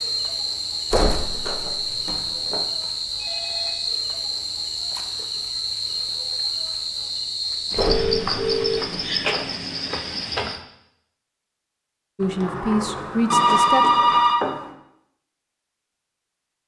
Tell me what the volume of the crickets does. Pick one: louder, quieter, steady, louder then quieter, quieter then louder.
steady.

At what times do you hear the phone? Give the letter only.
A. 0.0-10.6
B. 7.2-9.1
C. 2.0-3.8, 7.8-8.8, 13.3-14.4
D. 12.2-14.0
C.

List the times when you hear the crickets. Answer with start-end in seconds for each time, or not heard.
0.0-10.6.